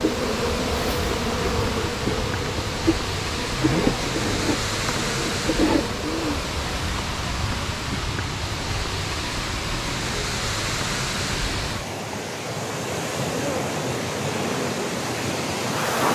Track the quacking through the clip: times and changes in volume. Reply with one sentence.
You can't hear the quacking here.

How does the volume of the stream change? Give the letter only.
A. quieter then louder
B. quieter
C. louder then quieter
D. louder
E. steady
E.